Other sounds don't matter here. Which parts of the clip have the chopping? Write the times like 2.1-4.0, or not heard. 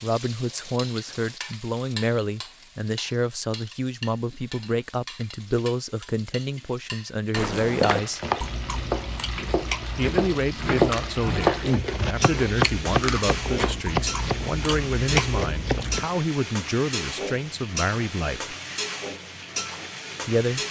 8.0-16.1.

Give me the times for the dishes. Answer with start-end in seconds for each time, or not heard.
not heard.